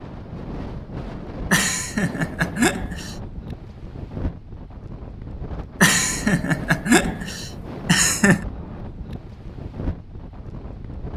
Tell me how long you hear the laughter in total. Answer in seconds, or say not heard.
4 s.